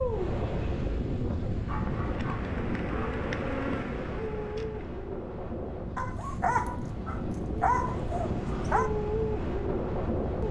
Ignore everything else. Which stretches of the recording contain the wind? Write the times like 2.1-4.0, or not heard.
0.0-10.4.